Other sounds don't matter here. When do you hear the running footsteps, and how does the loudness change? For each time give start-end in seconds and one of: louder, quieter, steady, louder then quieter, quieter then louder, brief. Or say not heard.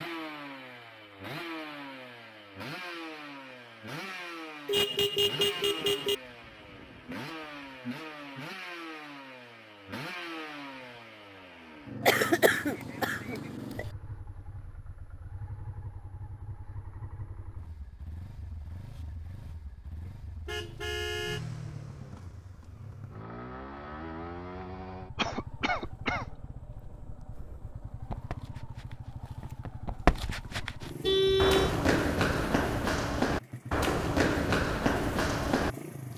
28.1-35.7 louder.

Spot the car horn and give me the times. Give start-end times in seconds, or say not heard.
4.7-6.2, 20.1-21.4, 31.0-31.8.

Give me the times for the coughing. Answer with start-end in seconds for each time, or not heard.
12.1-13.8, 25.1-26.2.